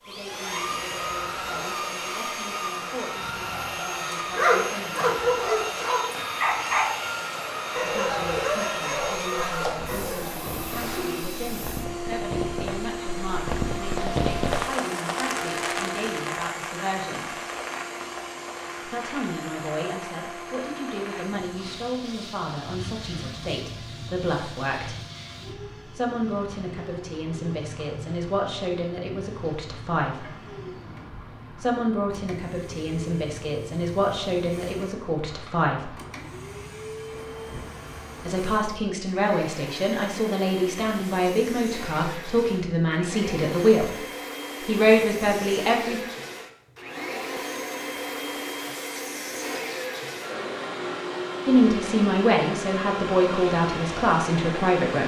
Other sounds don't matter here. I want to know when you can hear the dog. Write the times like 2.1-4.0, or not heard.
4.3-10.3.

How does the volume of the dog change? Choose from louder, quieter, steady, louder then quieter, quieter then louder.
quieter.